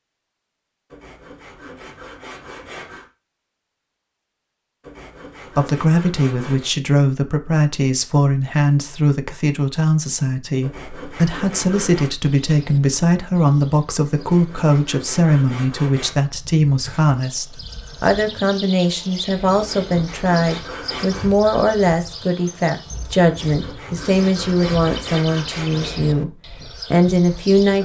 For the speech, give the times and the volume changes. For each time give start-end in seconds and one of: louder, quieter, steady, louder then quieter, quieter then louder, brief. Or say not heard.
5.5-27.7 steady.